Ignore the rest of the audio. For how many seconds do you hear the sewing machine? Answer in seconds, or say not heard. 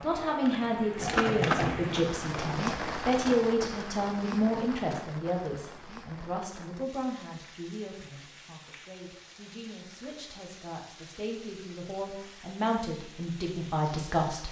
3 s.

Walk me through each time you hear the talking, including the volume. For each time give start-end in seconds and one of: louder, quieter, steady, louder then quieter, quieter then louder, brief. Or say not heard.
0.0-14.4 quieter then louder.